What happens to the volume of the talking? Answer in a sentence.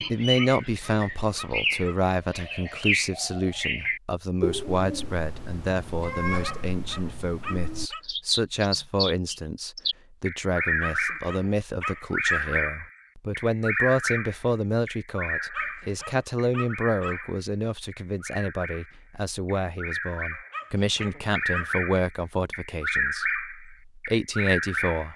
The volume of the talking stays about the same.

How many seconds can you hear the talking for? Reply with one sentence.
The talking can be heard for 25 seconds in total.